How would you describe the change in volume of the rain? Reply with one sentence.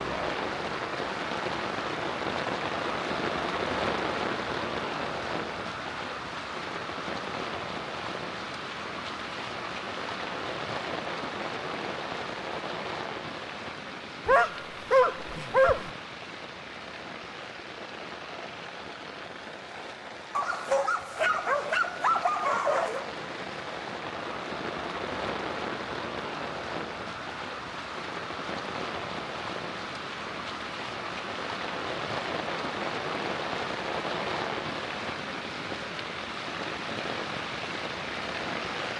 The volume of the rain goes down, then up.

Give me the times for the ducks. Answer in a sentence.
You can't hear the ducks here.